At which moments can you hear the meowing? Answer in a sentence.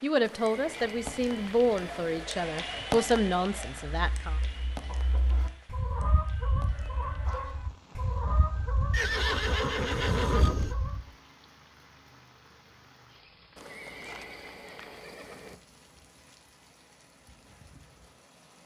The meowing can't be heard in this clip.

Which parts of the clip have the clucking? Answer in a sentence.
The clucking can be heard from 0.8 to 11.1 s.